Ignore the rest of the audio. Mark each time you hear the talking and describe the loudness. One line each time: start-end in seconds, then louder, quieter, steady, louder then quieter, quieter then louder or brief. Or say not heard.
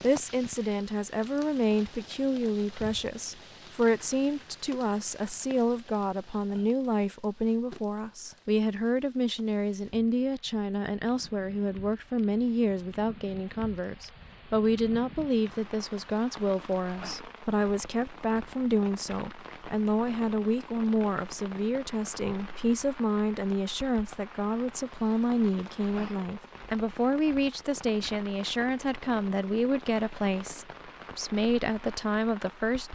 0.0-32.8 steady.